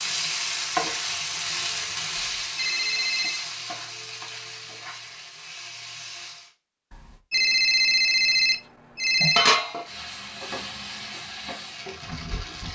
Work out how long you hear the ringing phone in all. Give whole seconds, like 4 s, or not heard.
4 s.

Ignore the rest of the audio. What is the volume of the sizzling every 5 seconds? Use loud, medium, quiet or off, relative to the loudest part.
loud, loud, medium.